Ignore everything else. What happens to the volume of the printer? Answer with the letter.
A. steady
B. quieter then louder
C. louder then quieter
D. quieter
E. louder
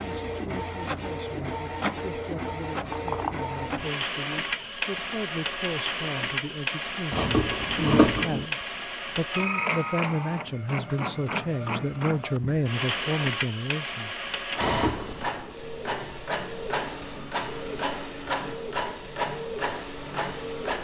A.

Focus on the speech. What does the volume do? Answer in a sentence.
The volume of the speech goes up.